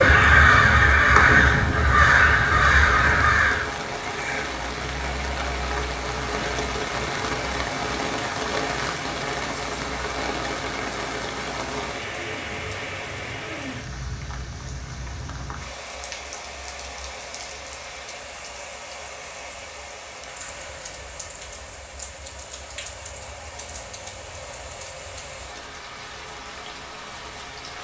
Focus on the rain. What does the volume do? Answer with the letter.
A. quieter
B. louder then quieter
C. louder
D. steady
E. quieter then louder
A.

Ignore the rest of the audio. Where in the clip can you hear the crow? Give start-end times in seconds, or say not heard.
0.0-3.8.